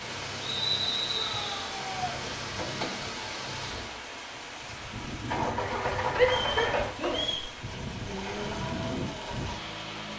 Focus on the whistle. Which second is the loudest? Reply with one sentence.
The loudest moment of the whistle is at 1 second.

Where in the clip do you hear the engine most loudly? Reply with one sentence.
The volume of the engine peaks at 6 seconds.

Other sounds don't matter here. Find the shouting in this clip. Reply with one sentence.
You can hear the shouting from 1.2 to 2.2 s and from 6.2 to 8.6 s.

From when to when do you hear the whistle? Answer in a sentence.
The whistle can be heard from 0.4 to 1.6 s and from 6.2 to 7.5 s.